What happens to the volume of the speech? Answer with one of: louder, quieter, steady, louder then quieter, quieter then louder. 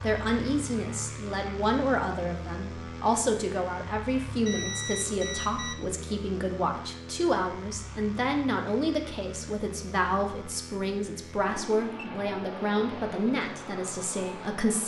steady.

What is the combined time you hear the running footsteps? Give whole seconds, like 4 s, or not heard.
not heard.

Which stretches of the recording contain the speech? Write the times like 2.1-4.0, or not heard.
0.0-14.8.